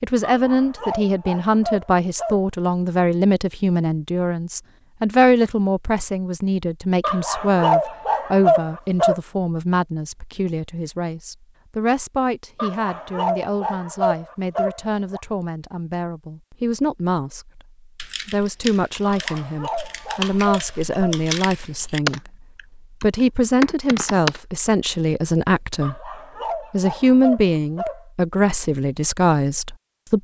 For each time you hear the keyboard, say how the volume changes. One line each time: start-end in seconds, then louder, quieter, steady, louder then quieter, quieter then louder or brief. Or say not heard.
17.9-24.4 louder.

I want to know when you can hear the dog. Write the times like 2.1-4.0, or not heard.
0.2-2.4, 7.0-9.2, 12.6-15.2, 19.0-21.1, 25.8-28.1.